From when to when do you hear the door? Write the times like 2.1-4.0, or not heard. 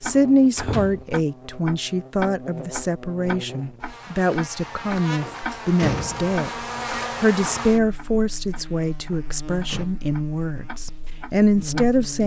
0.1-1.1, 5.2-6.3, 9.1-9.8.